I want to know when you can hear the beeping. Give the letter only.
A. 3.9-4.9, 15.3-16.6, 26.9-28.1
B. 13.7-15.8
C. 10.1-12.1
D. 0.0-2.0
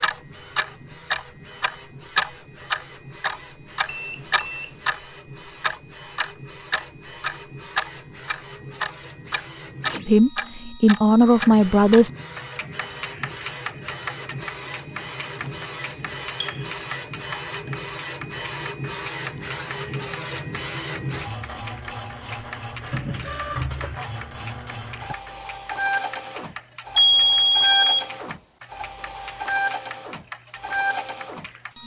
A.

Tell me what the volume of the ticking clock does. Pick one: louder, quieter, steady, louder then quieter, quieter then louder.
quieter.